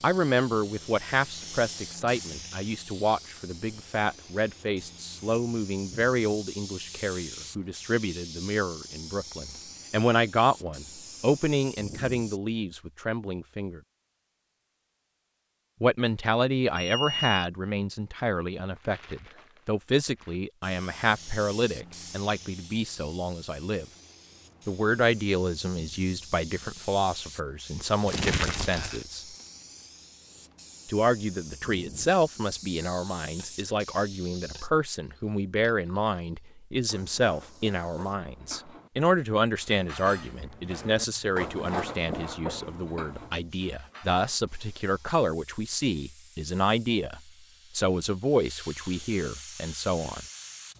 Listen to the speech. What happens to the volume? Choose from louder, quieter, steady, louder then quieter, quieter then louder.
steady.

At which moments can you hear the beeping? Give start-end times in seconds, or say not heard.
16.8-17.5.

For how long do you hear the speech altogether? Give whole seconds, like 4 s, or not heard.
46 s.